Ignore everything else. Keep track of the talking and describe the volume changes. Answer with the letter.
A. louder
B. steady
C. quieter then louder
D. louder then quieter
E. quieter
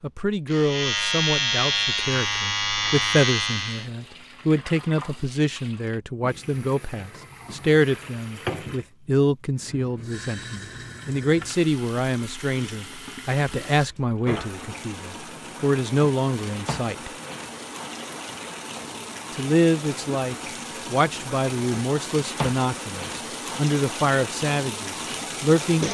B.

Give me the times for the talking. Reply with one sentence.
The talking can be heard from 0.0 to 17.1 s and from 19.3 to 25.8 s.